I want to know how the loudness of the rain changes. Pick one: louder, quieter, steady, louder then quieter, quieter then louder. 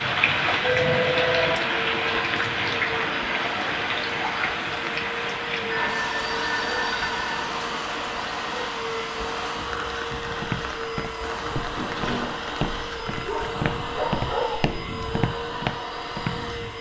quieter.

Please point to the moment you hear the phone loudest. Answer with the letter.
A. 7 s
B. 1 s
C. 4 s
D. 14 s
B.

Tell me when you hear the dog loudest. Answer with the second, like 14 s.
14 s.